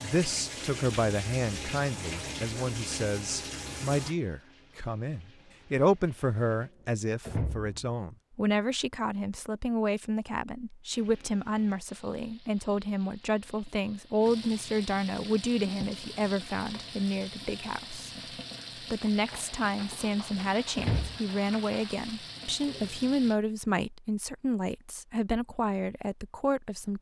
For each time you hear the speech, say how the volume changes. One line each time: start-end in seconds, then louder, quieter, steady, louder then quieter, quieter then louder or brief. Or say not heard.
0.0-18.1 steady
18.8-26.9 steady.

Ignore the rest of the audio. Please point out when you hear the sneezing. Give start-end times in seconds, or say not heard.
not heard.